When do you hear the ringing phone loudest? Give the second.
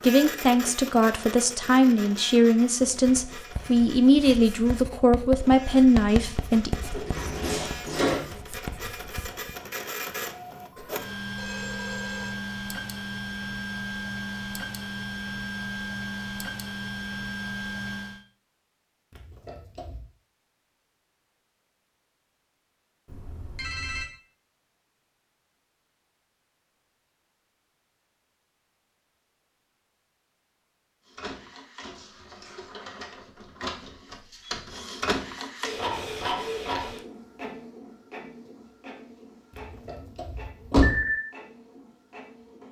41 s.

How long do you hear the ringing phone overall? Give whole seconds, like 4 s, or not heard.
3 s.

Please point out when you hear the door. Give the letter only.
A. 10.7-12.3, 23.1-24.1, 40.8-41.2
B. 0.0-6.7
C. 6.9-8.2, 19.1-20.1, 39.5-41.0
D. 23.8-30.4
C.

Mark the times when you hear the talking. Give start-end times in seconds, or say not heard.
0.0-6.7.